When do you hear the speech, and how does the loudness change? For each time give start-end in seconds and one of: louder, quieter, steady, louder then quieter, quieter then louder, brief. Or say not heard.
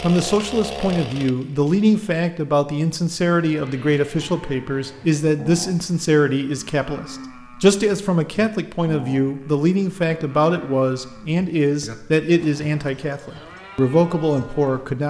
0.0-15.0 steady.